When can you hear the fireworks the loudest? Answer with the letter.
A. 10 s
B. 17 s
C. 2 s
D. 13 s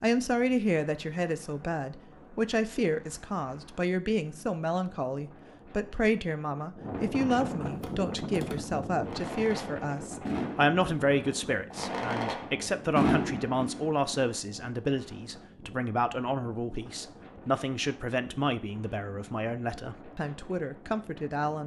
D.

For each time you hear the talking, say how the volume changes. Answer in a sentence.
The talking can be heard from 0.0 to 21.6 s, at a steady volume.